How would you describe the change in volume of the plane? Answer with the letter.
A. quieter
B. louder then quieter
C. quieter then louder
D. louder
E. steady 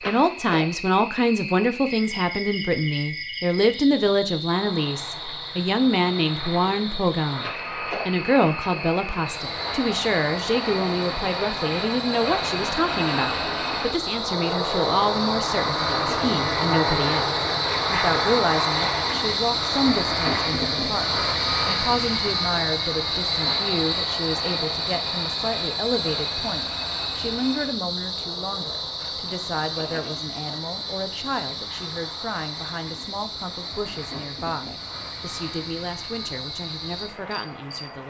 B.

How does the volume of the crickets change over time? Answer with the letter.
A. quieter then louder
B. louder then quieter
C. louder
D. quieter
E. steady
B.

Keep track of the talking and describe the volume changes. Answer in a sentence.
The loudness of the talking goes down.